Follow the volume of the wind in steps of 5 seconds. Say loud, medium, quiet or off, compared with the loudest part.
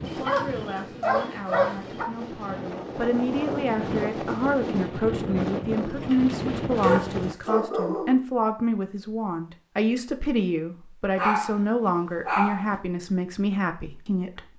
loud, loud, off.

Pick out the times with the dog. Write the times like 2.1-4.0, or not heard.
0.1-2.0, 5.8-8.2, 11.2-11.6, 12.2-12.8.